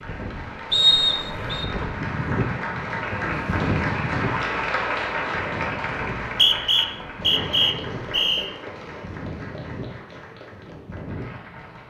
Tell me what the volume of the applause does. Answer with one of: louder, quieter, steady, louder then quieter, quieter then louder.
louder then quieter.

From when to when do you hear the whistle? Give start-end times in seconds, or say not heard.
0.7-1.6, 6.2-8.5.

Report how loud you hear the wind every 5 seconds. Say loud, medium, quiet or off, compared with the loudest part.
loud, medium, medium.